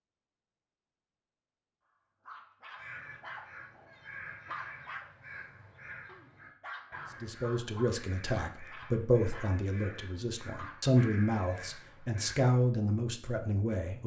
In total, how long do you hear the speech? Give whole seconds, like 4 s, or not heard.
7 s.